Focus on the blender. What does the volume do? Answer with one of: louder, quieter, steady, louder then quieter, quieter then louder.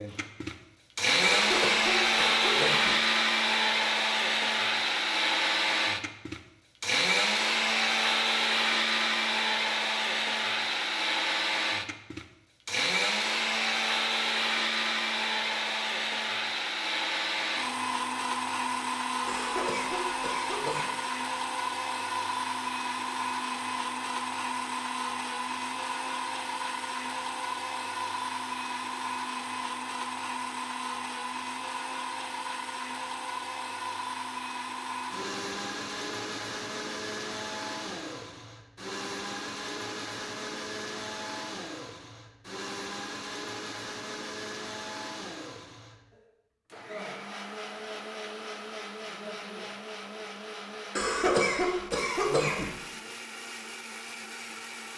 quieter.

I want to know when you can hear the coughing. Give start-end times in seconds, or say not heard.
1.2-3.0, 19.2-20.9, 51.0-52.7.